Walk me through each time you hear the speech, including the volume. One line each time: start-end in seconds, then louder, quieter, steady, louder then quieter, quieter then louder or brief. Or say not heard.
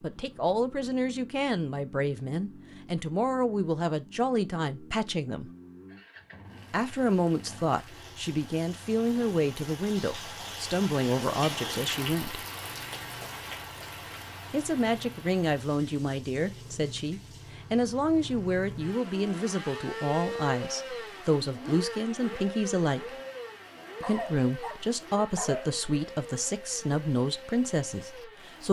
0.0-5.5 steady
6.7-12.4 steady
14.5-23.1 steady
24.0-28.6 steady.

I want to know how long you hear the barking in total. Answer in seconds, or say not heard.
2 s.